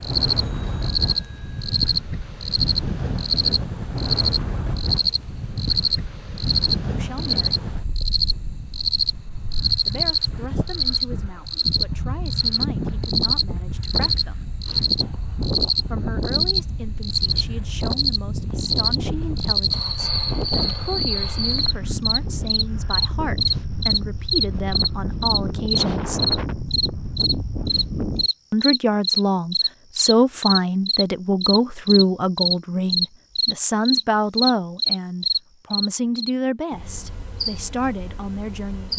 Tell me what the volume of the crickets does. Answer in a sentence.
The volume of the crickets stays about the same.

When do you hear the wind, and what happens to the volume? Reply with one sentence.
You can hear the wind from 0.0 to 28.3 s, at a steady volume.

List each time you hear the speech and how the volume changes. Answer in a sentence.
You can hear the speech briefly from 6.8 to 7.5 s; from 9.8 to 14.5 s, at a steady volume; from 15.9 to 26.2 s, getting louder; and from 28.5 to 38.9 s, getting quieter.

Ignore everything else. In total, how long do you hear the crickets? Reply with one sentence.
You can hear the crickets for 39 seconds altogether.